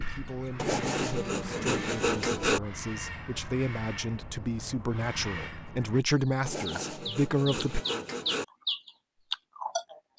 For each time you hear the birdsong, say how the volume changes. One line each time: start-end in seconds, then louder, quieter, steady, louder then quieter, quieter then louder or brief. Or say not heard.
0.0-10.1 louder.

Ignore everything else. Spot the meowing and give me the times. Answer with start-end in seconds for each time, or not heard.
not heard.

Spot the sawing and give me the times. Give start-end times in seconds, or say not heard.
0.6-2.6, 6.5-8.4.